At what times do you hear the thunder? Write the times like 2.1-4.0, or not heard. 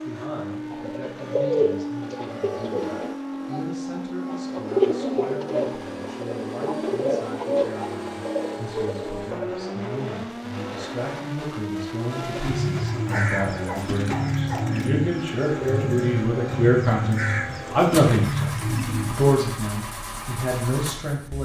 not heard.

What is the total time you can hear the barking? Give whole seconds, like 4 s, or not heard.
2 s.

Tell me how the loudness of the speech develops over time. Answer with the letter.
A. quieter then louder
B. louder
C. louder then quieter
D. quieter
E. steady
B.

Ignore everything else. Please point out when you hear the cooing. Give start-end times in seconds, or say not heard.
0.5-9.7, 12.1-19.3.